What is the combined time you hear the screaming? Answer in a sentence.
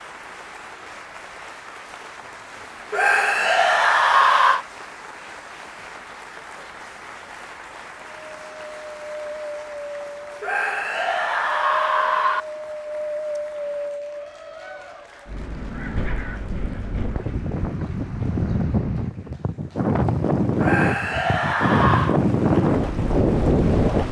The screaming can be heard for 5 seconds in total.